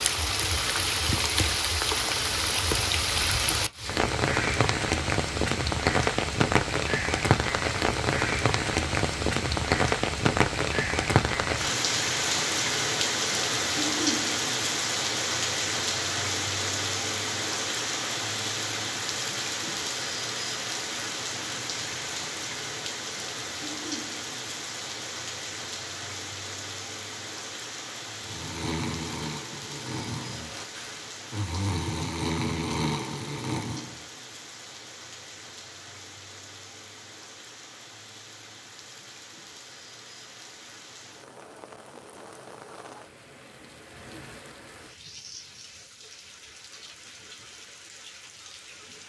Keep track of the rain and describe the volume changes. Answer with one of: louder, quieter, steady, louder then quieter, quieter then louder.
quieter.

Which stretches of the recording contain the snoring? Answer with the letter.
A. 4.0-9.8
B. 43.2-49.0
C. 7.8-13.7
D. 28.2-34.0
D.